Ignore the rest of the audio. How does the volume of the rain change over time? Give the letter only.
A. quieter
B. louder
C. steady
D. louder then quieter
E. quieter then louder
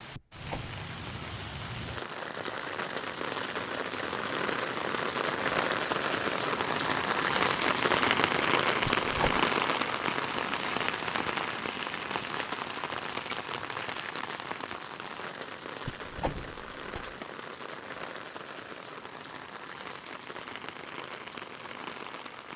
D.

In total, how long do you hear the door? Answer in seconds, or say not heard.
3 s.